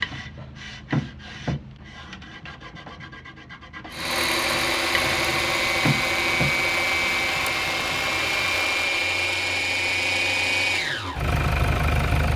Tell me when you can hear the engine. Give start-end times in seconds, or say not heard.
3.9-12.3.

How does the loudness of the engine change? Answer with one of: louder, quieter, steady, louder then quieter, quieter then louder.
steady.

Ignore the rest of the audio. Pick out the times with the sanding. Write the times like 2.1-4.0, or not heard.
0.0-8.6.